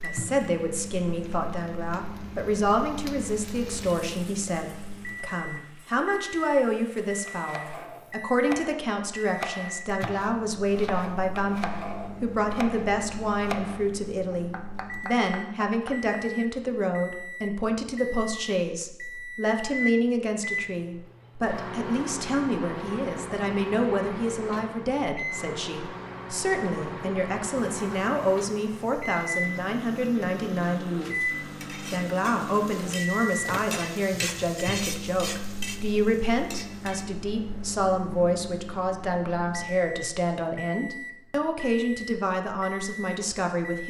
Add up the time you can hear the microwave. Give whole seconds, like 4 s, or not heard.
44 s.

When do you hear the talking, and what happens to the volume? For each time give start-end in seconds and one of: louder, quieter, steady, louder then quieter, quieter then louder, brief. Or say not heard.
0.0-43.8 steady.